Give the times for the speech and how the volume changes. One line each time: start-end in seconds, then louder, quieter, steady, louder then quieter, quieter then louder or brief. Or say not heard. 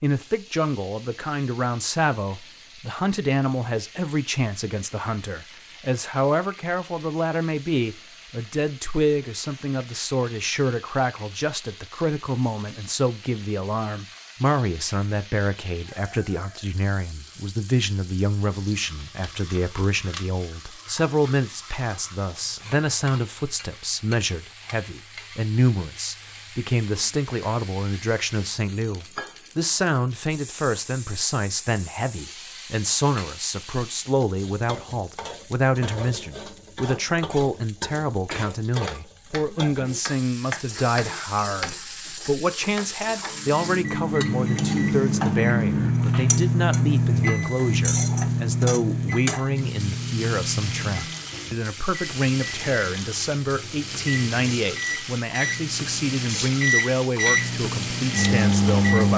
0.0-59.1 steady.